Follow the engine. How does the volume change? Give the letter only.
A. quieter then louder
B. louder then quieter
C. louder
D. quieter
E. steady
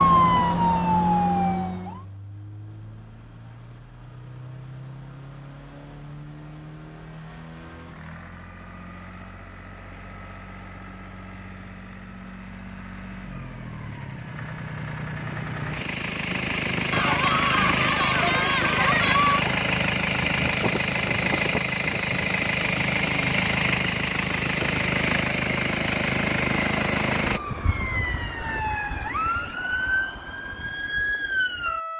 C.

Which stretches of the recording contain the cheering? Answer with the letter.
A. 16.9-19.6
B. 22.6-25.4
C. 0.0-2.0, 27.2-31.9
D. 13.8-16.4
A.